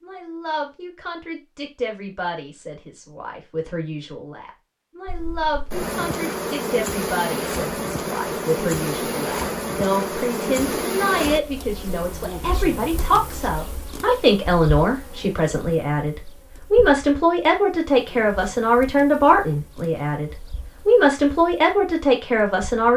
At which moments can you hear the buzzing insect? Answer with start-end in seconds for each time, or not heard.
5.0-22.9.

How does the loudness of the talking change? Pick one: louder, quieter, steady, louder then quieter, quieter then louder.
louder.